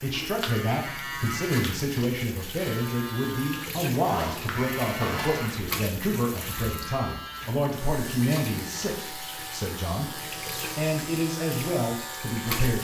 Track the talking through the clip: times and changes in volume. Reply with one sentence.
The talking can be heard from 0.0 to 12.7 s, at a steady volume.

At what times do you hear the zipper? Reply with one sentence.
You can hear the zipper from 3.9 to 5.5 s.